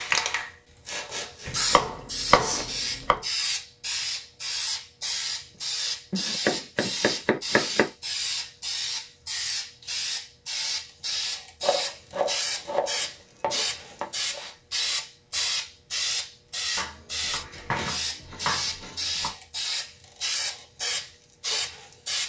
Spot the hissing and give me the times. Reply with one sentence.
The hissing can be heard from 0.0 to 22.2 s.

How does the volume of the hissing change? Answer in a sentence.
The loudness of the hissing stays about the same.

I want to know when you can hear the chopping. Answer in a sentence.
The chopping can be heard from 1.4 to 3.2 s, from 6.1 to 7.9 s, from 11.6 to 14.4 s and from 16.8 to 19.4 s.